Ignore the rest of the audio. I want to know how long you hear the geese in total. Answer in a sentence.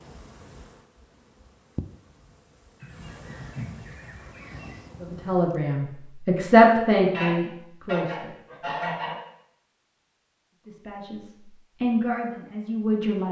You can hear the geese for 4 seconds altogether.